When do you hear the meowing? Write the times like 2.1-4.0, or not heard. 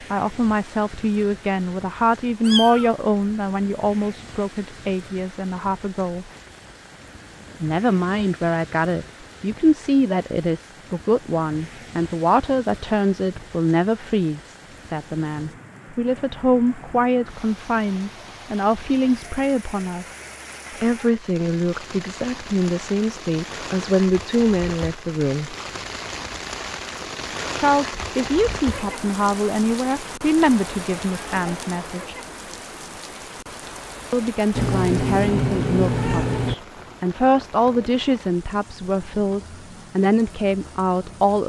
2.4-2.9, 34.5-36.5.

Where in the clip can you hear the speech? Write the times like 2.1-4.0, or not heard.
0.0-6.2, 7.6-20.1, 20.8-25.6, 27.6-32.1, 34.1-41.4.